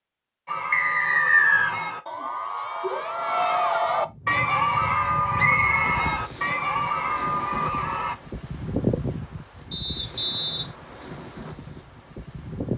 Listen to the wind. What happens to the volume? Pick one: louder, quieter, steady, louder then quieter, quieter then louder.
louder then quieter.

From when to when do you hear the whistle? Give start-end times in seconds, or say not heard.
0.7-1.8, 5.3-6.0, 9.7-10.7.